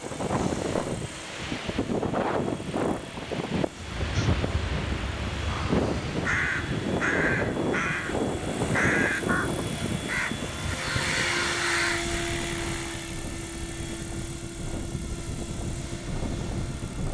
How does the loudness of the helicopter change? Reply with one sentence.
The volume of the helicopter goes up, then down.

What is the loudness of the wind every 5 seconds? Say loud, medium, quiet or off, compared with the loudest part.
loud, loud, medium, medium.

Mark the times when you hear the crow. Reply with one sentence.
The crow can be heard from 3.8 to 12.2 s.